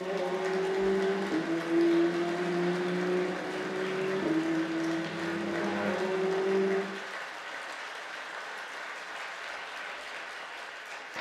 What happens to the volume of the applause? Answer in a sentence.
The loudness of the applause stays about the same.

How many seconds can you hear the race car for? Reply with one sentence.
The race car can be heard for 7 seconds in total.